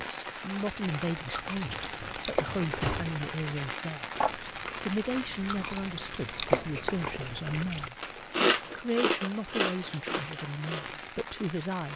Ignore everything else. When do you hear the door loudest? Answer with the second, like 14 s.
3 s.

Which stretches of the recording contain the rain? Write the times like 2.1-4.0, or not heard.
0.0-11.9.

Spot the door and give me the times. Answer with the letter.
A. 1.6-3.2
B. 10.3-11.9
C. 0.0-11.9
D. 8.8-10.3
A.